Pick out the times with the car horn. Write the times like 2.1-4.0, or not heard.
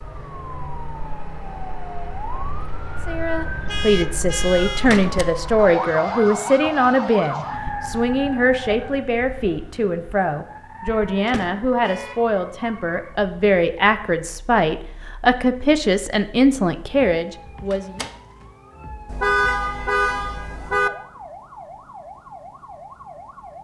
3.6-5.0, 11.8-12.2, 19.1-20.9.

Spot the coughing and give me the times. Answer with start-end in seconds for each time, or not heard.
not heard.